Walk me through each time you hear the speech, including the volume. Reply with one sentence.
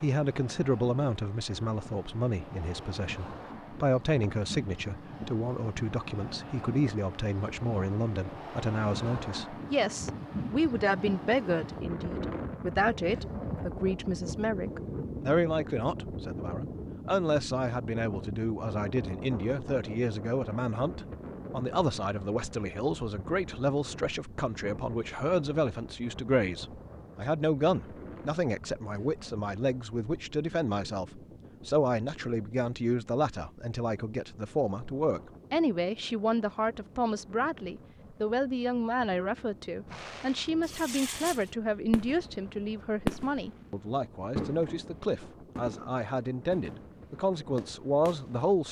You can hear the speech from 0.0 to 48.6 s, at a steady volume.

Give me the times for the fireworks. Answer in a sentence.
You can hear the fireworks from 39.9 to 48.5 s.